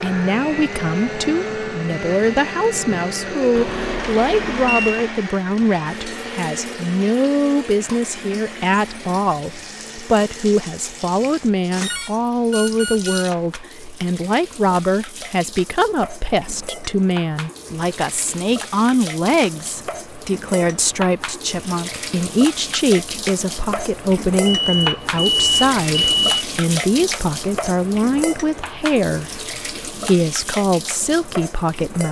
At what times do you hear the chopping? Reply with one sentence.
You can't hear the chopping here.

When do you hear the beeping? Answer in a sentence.
The beeping can be heard from 3.5 to 5.0 s, from 11.2 to 13.3 s and from 24.4 to 26.4 s.